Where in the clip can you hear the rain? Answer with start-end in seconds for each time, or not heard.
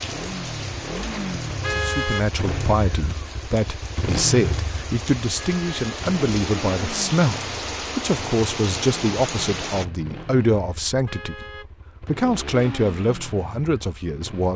0.0-9.8.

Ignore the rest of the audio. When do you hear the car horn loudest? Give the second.
2 s.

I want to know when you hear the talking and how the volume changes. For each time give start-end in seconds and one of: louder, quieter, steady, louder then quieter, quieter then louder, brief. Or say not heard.
1.7-11.4 steady
12.1-14.5 brief.